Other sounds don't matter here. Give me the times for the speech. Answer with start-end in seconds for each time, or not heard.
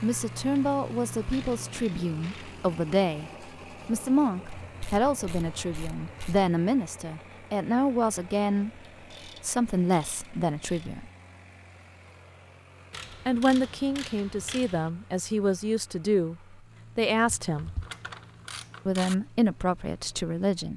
0.0-8.7, 9.4-11.1, 13.2-17.7, 18.9-20.7.